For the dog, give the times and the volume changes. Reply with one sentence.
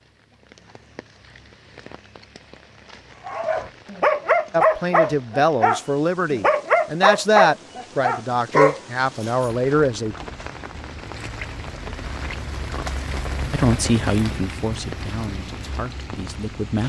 You can hear the dog from 3.2 to 9.5 s, at a steady volume.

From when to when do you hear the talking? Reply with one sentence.
You can hear the talking from 4.5 to 10.2 s and from 13.5 to 16.8 s.